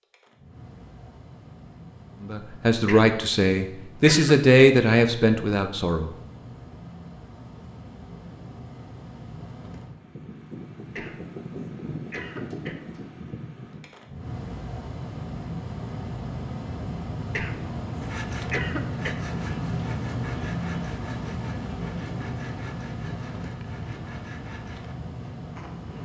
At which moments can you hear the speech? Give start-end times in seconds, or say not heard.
2.2-6.2.